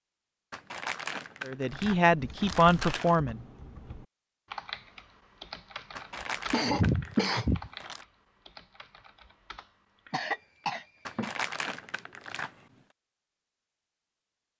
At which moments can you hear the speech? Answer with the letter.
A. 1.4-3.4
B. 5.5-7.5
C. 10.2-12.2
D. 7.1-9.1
A.